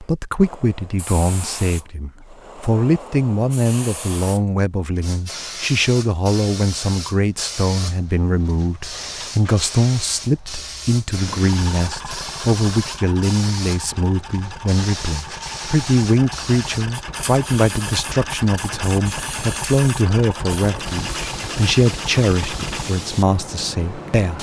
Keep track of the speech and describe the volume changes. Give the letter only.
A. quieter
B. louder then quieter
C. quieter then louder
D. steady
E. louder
D.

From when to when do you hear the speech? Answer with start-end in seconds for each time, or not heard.
0.0-24.3.